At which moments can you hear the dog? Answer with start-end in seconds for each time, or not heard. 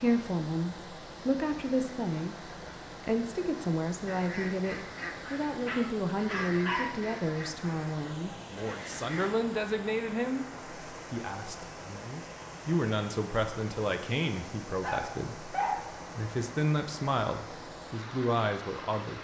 5.7-6.9, 14.8-15.8.